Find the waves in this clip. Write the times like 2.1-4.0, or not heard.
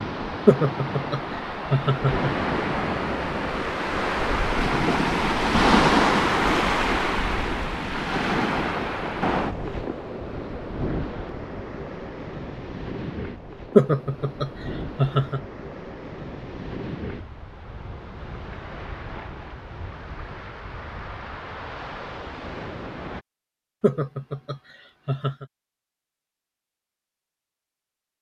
0.0-23.2.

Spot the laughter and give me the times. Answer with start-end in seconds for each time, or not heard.
0.5-2.3, 13.8-15.4, 23.8-25.4.